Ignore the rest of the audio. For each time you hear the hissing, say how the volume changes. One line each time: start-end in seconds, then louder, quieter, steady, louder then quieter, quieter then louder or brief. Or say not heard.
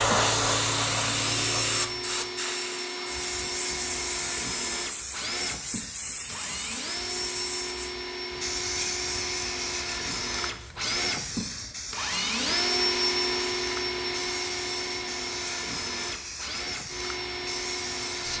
0.0-18.3 quieter.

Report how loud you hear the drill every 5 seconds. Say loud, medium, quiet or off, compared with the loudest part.
medium, medium, loud, medium.